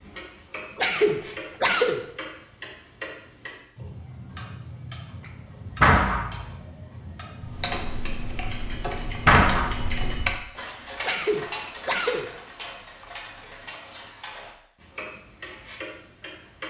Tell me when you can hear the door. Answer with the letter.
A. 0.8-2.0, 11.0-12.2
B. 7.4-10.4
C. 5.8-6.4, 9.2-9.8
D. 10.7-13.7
C.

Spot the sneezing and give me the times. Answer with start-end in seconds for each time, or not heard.
0.8-2.0, 11.0-12.2.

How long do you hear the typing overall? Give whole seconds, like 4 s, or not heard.
3 s.